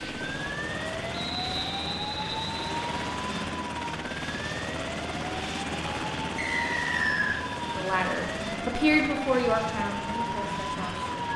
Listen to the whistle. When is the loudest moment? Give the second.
7 s.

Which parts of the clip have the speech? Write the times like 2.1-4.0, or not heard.
7.6-11.1.